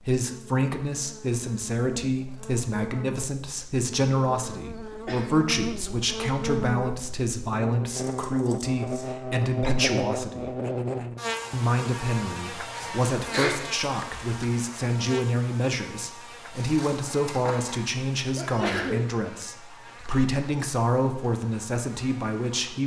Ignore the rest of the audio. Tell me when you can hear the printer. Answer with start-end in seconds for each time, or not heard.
not heard.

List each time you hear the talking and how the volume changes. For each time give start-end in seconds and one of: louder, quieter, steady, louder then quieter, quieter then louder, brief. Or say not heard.
0.0-10.6 steady
11.5-22.8 steady.